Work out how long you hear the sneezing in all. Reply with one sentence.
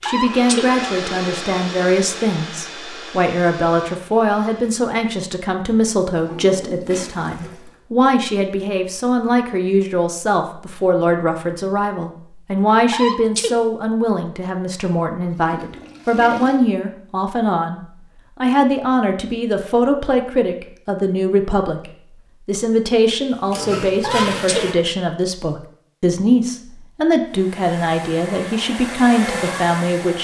The sneezing can be heard for 2 seconds in total.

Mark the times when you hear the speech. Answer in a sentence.
The speech can be heard from 0.0 to 30.2 s.